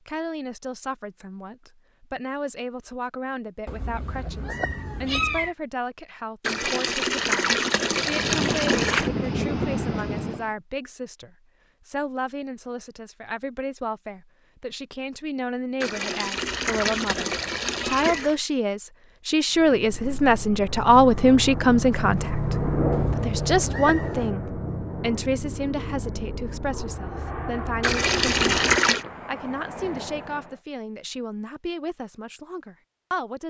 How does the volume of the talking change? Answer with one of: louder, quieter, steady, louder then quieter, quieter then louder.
louder then quieter.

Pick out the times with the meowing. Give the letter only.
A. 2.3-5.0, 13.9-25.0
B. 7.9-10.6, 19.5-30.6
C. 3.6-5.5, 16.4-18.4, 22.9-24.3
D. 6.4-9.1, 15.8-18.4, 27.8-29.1
C.